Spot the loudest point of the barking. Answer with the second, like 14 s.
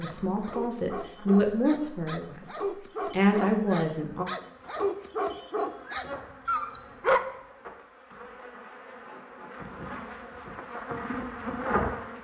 7 s.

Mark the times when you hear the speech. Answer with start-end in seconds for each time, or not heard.
0.0-4.2.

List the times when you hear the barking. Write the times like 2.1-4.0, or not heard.
0.0-7.4.